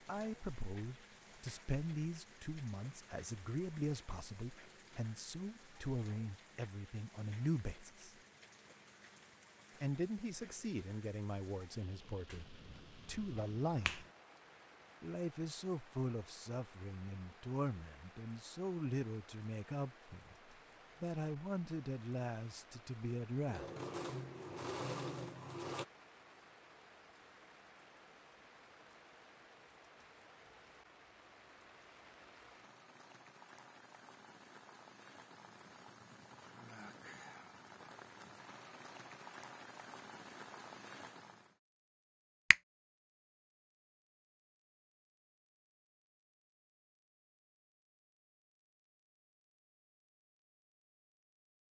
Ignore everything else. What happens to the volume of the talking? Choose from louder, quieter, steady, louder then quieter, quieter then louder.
steady.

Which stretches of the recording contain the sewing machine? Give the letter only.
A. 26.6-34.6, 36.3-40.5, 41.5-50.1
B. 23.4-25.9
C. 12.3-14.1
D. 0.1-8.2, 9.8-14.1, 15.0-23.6
B.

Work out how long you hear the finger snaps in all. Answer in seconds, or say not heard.
2 s.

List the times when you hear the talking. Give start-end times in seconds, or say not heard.
0.1-8.2, 9.8-14.1, 15.0-23.6.